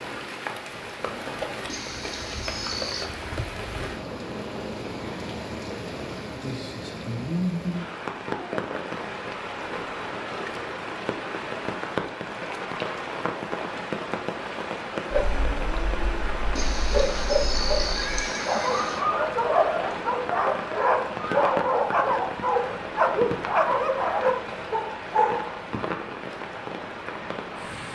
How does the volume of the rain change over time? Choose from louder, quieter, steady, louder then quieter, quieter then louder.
steady.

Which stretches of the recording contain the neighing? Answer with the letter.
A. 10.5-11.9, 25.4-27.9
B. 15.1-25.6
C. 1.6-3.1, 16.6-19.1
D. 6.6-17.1
C.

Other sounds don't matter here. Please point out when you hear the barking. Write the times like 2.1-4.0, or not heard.
15.1-25.6.